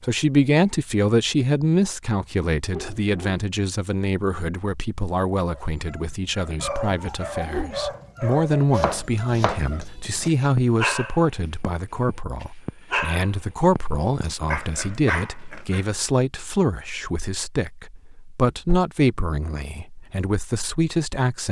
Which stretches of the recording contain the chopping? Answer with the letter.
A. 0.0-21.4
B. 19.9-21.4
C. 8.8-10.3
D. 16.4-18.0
C.